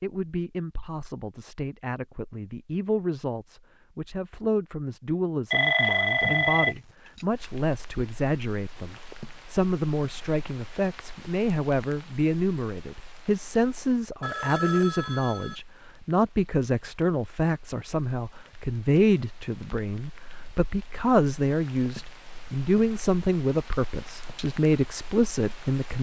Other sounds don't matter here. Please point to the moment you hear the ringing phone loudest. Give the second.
6 s.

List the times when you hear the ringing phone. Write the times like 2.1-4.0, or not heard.
5.5-7.2, 14.2-15.6.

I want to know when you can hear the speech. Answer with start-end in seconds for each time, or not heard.
0.0-25.9.